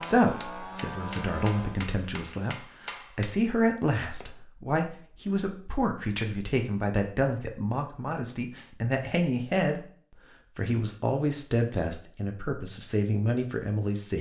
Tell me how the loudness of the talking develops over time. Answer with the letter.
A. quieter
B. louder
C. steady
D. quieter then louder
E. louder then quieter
C.